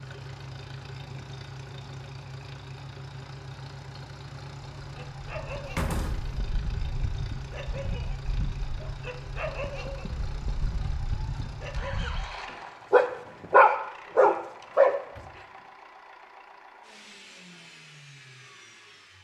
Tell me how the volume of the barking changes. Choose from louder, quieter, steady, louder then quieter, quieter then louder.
louder.